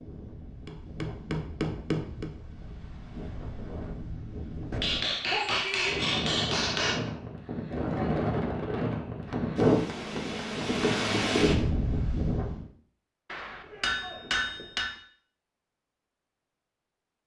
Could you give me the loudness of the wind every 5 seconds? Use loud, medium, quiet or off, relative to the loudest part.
quiet, loud, loud, off.